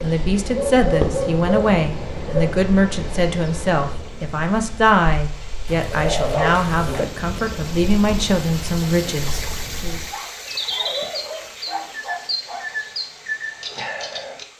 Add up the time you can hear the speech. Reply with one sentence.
The speech can be heard for 10 seconds in total.